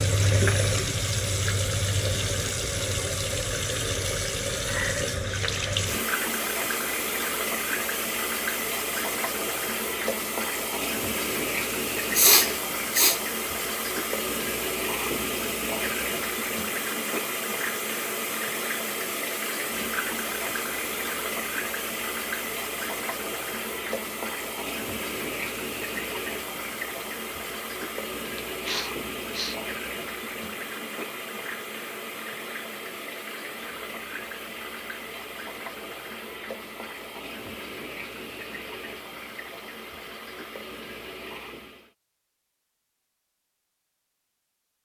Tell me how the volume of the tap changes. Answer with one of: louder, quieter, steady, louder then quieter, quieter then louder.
quieter.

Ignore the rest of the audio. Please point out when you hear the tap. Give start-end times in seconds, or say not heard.
0.0-42.0.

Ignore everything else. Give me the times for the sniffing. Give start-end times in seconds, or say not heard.
12.2-13.2, 28.6-29.6.